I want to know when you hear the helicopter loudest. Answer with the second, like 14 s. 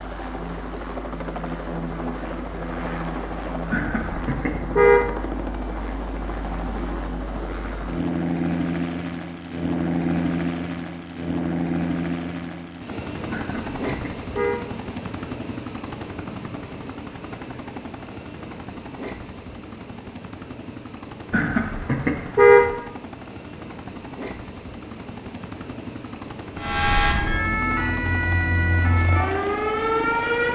10 s.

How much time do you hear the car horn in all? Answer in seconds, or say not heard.
4 s.